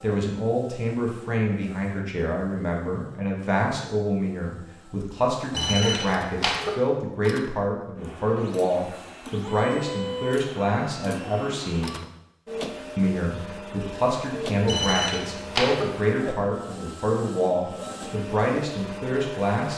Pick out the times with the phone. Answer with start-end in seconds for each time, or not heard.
5.5-6.7, 14.7-15.8.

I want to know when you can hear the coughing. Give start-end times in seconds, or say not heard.
not heard.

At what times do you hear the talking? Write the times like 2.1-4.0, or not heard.
0.0-11.9, 12.9-19.7.